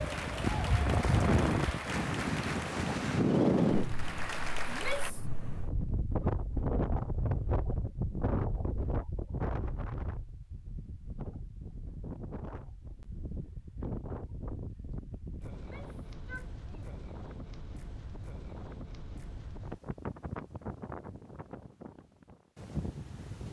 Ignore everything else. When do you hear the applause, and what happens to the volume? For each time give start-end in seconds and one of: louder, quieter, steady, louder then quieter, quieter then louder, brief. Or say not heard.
0.0-5.2 quieter then louder.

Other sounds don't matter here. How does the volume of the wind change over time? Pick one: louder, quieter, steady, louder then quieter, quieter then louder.
quieter.